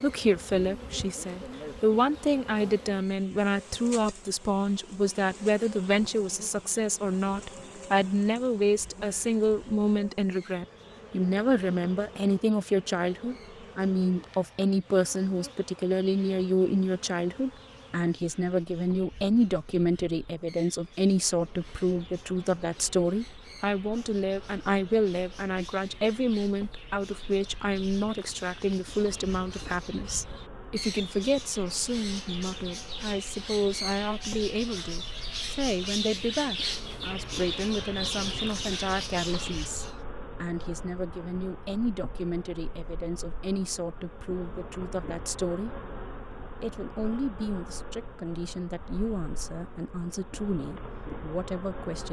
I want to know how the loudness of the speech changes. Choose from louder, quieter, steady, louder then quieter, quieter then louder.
quieter.